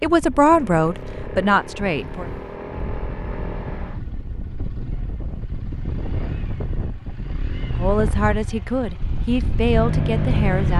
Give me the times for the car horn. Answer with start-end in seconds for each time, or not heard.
not heard.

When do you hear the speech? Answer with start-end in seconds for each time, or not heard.
0.0-2.3, 7.8-10.7.